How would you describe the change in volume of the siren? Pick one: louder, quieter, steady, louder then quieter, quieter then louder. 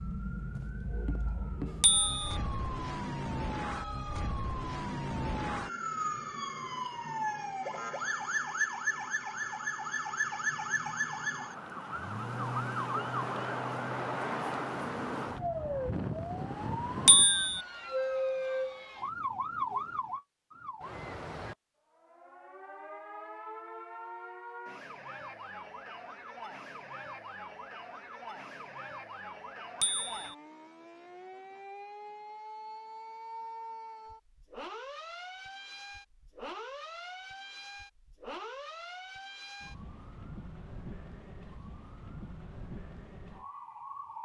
quieter.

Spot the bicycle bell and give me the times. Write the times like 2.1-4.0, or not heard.
1.8-2.2, 17.1-17.6, 29.8-30.4.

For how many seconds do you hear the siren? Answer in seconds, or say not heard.
44 s.